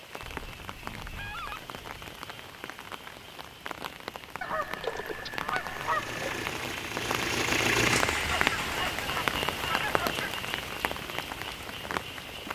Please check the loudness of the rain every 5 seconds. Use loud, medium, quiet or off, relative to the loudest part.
medium, loud, loud.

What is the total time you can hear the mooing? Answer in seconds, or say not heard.
not heard.